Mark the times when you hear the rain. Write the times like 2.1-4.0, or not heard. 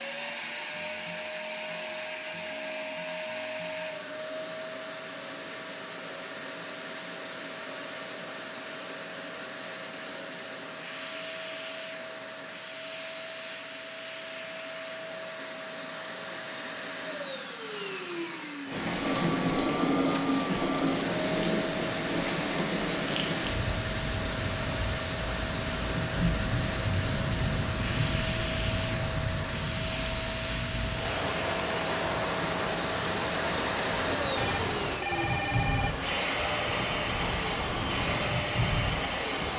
18.6-39.5.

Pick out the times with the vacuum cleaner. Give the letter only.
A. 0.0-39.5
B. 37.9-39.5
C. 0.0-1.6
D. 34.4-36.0
A.